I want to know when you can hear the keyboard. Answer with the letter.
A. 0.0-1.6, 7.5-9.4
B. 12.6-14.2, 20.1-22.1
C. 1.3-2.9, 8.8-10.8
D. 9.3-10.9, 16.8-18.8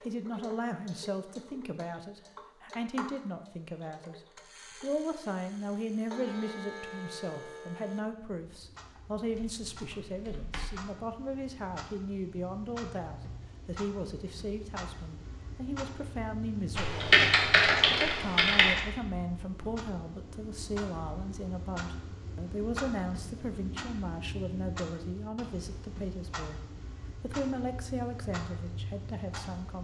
D.